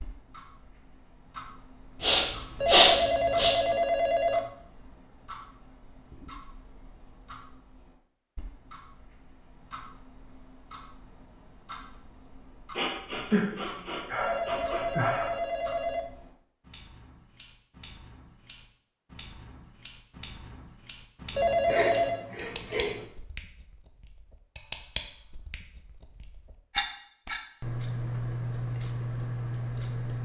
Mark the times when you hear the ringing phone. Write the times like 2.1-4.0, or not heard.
2.5-4.5, 14.2-16.1, 21.4-22.2.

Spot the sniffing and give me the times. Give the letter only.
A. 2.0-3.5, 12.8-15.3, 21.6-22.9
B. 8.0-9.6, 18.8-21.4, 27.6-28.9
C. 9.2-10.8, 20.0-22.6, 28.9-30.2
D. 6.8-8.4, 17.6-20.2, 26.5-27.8
A.